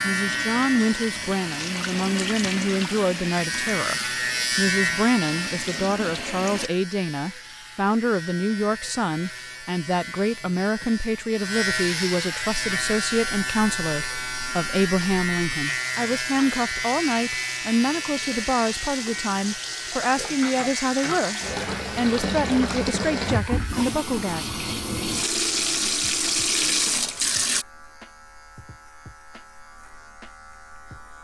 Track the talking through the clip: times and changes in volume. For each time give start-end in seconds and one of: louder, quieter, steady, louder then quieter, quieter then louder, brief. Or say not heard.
0.0-24.4 steady.